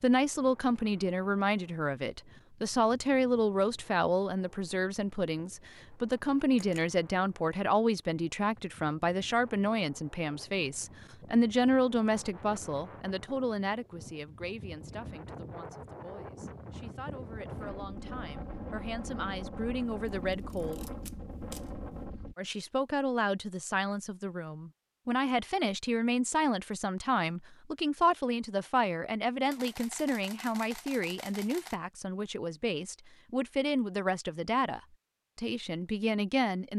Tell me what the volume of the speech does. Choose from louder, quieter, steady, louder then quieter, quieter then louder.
quieter then louder.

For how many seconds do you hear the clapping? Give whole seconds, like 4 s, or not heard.
not heard.